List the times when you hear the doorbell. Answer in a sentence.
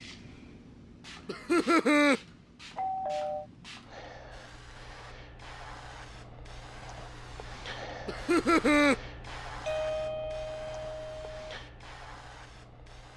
The doorbell can be heard from 2.8 to 3.5 s and from 9.6 to 11.5 s.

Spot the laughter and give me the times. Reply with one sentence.
The laughter can be heard from 1.2 to 2.2 s and from 8.1 to 8.9 s.